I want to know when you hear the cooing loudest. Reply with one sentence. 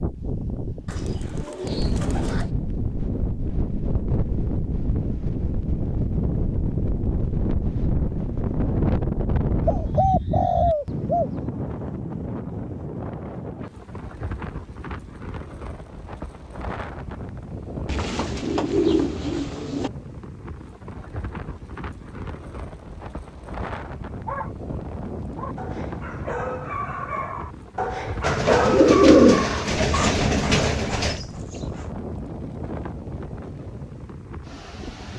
The volume of the cooing peaks at 29 seconds.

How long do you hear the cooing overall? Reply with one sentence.
The cooing can be heard for 8 seconds in total.